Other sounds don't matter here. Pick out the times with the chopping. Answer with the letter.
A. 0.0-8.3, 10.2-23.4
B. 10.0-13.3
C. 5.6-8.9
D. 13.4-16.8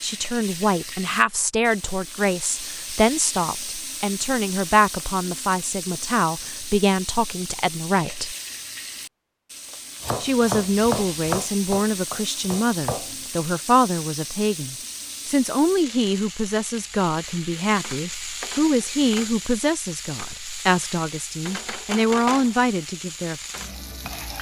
B.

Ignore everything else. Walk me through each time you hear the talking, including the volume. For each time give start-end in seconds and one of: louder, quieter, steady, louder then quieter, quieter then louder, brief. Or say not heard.
0.0-8.3 steady
10.2-23.4 steady.